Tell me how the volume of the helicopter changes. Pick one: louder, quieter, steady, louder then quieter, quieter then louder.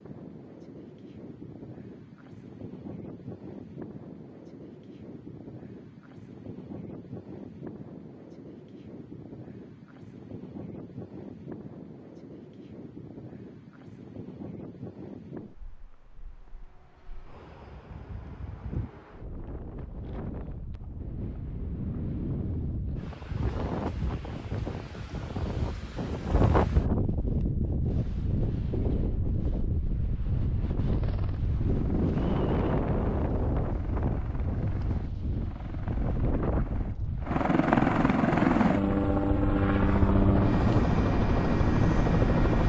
louder.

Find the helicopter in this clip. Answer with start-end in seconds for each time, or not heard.
30.8-42.6.